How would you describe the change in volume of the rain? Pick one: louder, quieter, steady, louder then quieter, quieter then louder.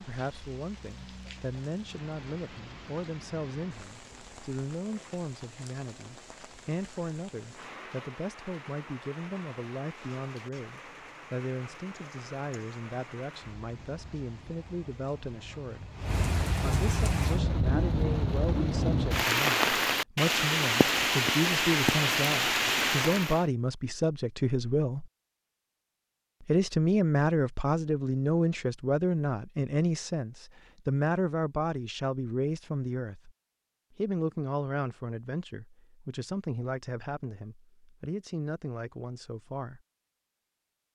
louder.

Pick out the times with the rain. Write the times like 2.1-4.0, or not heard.
0.0-23.4.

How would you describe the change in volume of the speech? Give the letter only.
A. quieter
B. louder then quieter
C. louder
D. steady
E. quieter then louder
B.